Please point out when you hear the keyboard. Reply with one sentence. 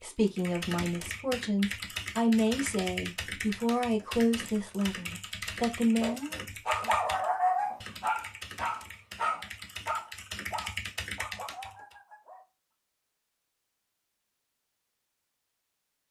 The keyboard can be heard from 0.2 to 11.9 s.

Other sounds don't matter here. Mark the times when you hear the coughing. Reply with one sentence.
You can't hear the coughing here.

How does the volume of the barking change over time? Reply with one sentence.
The loudness of the barking goes down.